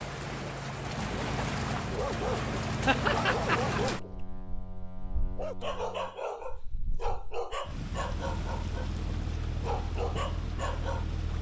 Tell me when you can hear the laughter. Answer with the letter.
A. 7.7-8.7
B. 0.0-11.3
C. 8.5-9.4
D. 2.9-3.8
D.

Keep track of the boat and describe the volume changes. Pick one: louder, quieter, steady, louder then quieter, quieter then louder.
quieter then louder.